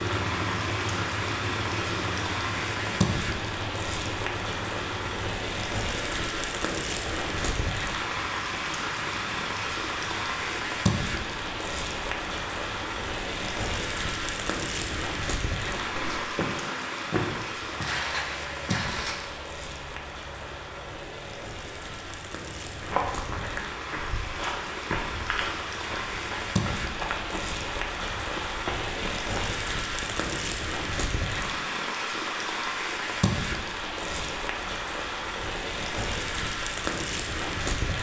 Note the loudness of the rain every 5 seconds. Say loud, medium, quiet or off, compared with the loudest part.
loud, loud, loud, loud, medium, loud, loud, loud.